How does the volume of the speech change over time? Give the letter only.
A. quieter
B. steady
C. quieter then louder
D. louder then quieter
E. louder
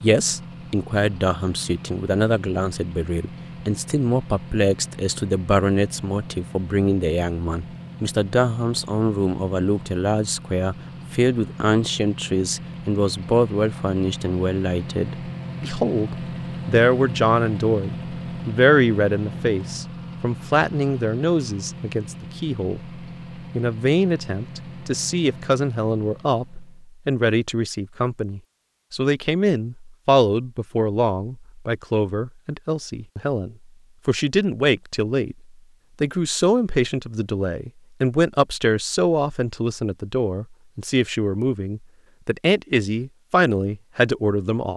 B.